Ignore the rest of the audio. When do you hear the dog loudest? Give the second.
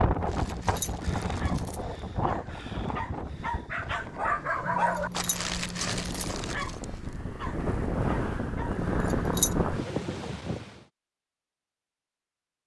5 s.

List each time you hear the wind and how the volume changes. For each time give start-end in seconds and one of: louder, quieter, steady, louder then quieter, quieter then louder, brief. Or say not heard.
0.0-10.8 quieter then louder.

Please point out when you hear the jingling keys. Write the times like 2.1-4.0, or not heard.
0.4-1.9, 4.7-6.3, 8.8-9.7.